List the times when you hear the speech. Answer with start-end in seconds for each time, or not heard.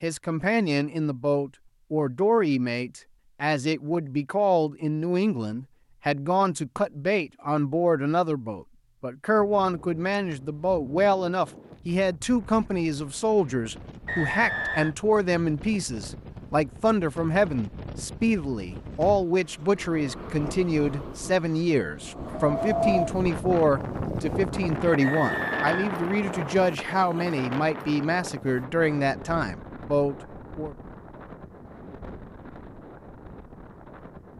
0.0-30.8.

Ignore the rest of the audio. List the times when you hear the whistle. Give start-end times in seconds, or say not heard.
14.1-14.9, 25.0-26.6.